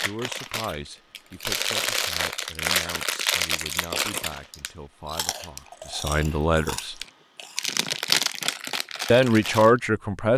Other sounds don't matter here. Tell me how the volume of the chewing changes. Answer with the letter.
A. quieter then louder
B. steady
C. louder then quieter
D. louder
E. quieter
A.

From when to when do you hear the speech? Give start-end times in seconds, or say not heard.
0.0-7.0, 9.1-10.3.